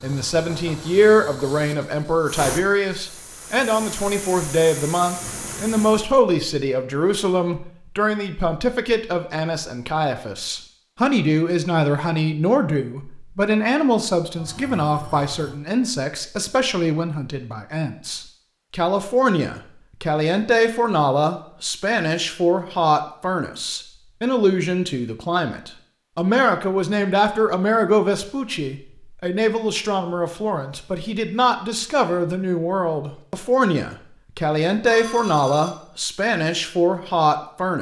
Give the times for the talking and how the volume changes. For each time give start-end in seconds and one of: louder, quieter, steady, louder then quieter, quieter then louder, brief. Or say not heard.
0.0-37.7 steady.